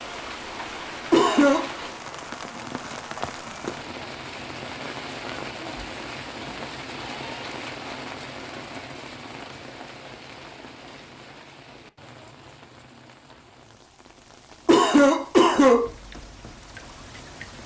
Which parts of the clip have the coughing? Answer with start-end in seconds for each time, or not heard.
1.1-1.7, 14.7-15.9.